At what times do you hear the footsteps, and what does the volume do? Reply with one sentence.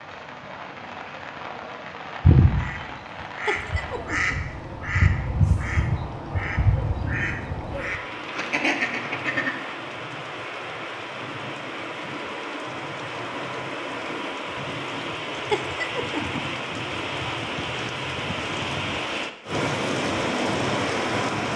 The footsteps can't be heard in this clip.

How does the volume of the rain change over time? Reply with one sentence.
The volume of the rain goes up.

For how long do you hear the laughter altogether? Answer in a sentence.
You can hear the laughter for 2 seconds altogether.